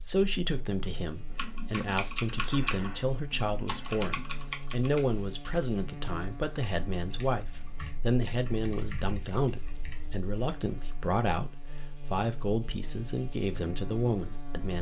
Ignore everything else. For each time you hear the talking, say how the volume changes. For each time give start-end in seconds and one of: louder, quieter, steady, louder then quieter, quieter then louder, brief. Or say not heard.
0.1-14.7 steady.